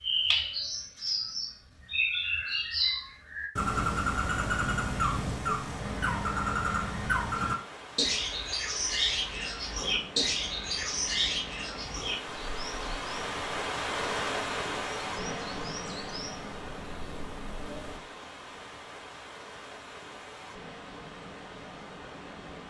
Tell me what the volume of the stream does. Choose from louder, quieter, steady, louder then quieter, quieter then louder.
louder then quieter.